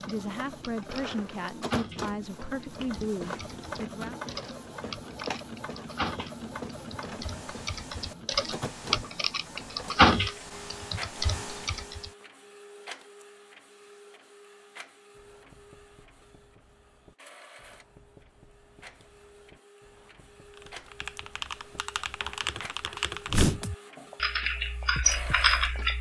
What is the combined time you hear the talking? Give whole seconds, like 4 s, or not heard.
4 s.